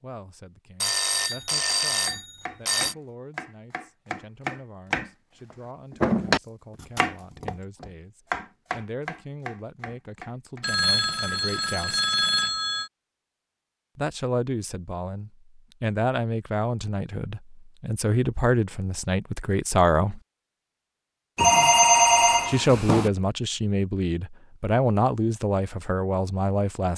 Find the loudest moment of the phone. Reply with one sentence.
The loudest moment of the phone is at 22 seconds.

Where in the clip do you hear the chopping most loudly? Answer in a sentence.
The volume of the chopping peaks at 6 seconds.